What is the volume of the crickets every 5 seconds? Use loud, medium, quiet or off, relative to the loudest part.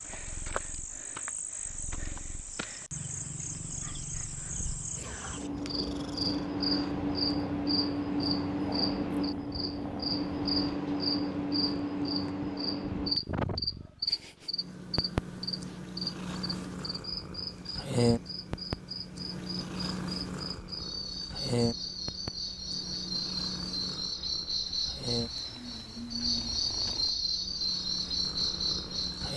medium, loud, loud, medium, medium, loud.